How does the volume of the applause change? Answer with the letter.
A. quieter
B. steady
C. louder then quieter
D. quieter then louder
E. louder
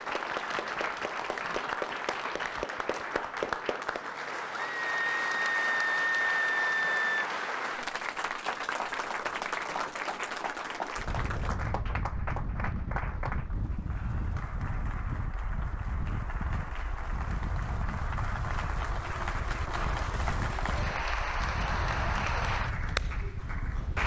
D.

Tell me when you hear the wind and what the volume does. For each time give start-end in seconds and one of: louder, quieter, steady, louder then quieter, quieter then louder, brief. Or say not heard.
10.9-24.0 steady.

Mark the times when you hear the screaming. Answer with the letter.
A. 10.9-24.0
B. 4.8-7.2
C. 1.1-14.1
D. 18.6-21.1
B.